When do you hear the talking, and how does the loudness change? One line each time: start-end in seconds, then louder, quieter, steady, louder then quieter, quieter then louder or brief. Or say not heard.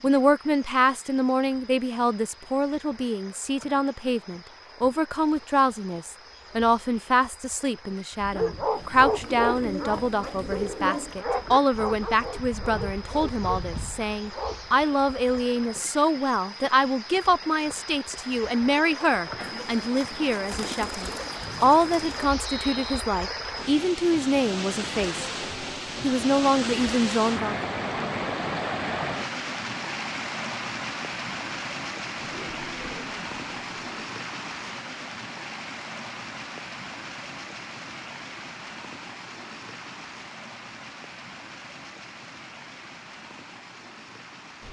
0.0-25.3 steady
26.0-27.7 brief.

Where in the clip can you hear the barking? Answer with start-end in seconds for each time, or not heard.
8.2-14.7.